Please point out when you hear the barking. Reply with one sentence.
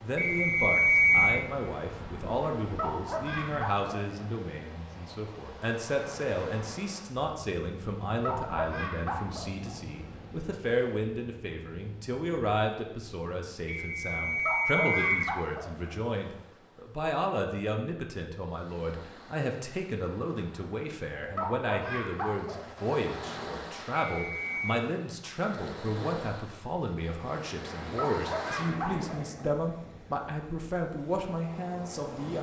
You can hear the barking from 2.6 to 4.3 s, from 8.1 to 9.8 s, from 14.2 to 15.9 s, from 21.1 to 22.9 s and from 27.9 to 29.5 s.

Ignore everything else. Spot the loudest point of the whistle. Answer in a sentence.
The loudest moment of the whistle is at 1 second.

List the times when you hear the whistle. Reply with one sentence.
You can hear the whistle from 0.1 to 1.4 s, from 13.7 to 15.3 s and from 24.1 to 24.9 s.